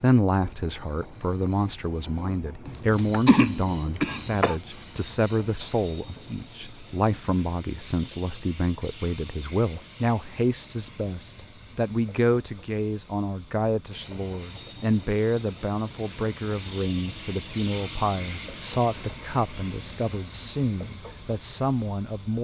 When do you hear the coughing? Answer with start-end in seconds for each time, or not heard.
2.6-4.5.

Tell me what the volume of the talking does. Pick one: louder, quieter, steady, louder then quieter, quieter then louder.
steady.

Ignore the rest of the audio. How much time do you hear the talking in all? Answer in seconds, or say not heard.
22 s.